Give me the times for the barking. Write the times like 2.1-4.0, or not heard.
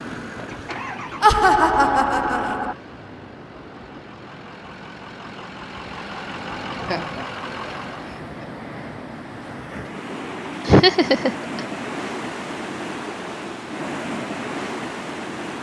not heard.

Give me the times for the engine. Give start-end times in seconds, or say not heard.
0.0-8.2.